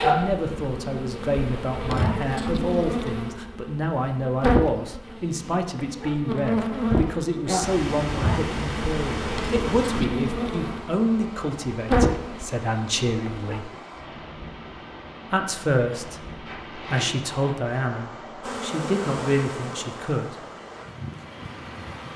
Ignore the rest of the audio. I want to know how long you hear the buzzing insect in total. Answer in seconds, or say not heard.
17 s.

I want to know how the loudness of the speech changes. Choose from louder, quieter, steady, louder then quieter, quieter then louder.
steady.